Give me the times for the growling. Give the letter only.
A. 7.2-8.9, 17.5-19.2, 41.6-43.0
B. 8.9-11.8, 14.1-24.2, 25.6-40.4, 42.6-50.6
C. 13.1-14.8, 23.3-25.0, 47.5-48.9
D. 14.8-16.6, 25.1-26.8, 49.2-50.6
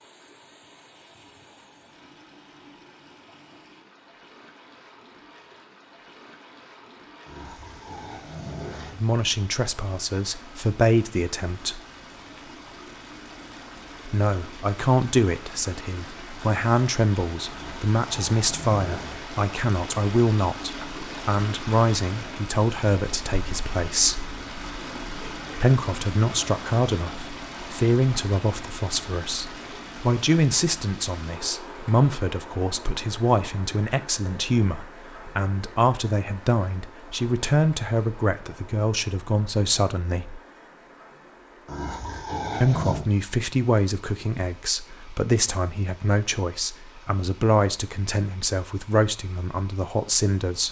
A.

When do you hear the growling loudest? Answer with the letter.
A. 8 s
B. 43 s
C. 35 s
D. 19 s
B.